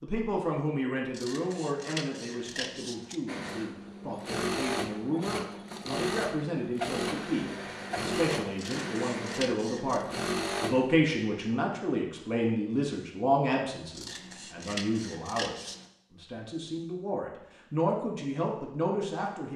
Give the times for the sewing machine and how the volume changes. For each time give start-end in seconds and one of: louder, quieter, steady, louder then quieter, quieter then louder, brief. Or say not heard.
3.2-10.9 steady.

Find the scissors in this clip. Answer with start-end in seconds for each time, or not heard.
1.1-3.2, 8.6-10.1, 13.9-15.9.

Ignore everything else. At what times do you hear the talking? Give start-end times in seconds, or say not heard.
0.0-19.5.